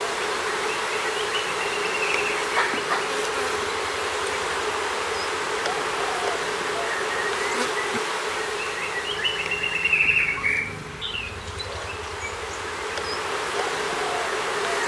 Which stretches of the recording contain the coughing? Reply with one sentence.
The coughing can be heard from 2.5 to 3.1 s.